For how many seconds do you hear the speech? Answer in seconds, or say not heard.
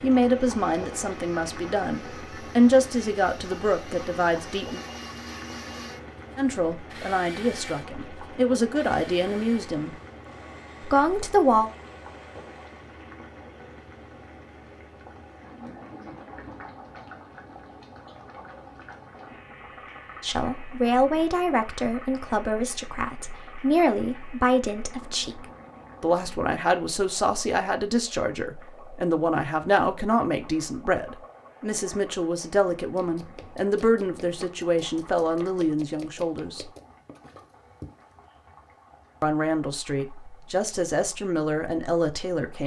29 s.